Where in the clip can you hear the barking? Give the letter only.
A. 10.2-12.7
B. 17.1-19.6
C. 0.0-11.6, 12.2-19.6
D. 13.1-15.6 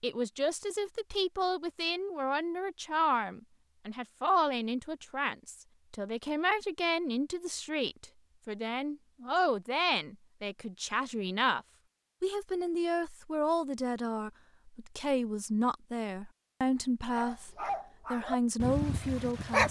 B.